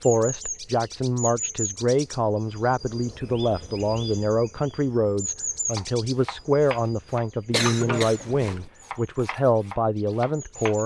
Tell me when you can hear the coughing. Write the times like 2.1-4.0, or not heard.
7.5-8.7.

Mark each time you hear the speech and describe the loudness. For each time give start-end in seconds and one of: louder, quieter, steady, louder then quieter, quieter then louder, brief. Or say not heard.
0.0-10.8 steady.